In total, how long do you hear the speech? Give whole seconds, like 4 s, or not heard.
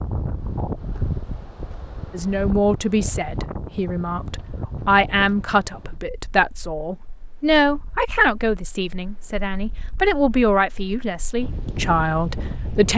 11 s.